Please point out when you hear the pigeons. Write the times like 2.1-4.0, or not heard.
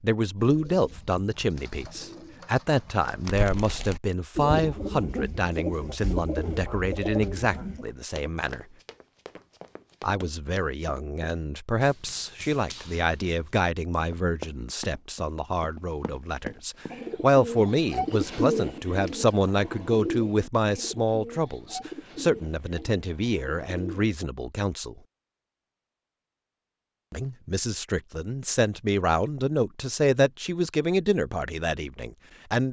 0.5-7.8, 16.9-24.1.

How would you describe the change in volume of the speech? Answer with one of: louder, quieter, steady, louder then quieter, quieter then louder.
steady.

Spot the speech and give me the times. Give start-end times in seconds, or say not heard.
0.0-8.7, 10.0-24.9, 27.1-32.6.